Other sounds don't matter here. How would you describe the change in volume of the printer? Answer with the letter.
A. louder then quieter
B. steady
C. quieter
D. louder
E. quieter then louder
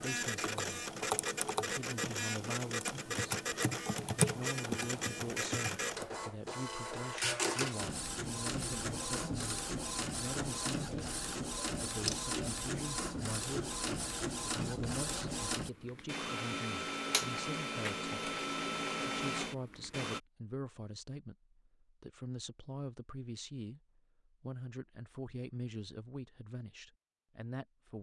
B.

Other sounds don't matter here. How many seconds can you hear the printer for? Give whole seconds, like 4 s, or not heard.
20 s.